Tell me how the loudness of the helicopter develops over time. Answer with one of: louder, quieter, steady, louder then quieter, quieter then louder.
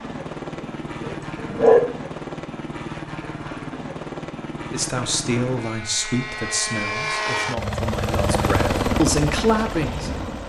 louder.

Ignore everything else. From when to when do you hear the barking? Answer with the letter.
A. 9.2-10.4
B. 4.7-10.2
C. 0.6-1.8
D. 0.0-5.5
C.